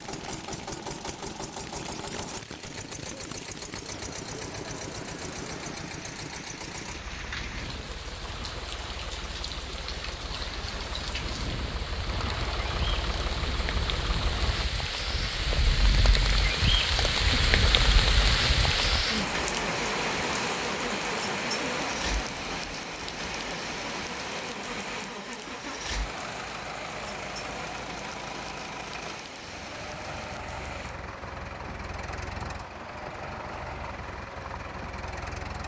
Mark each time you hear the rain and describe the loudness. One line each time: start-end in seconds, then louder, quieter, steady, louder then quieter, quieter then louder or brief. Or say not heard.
0.0-35.6 louder then quieter.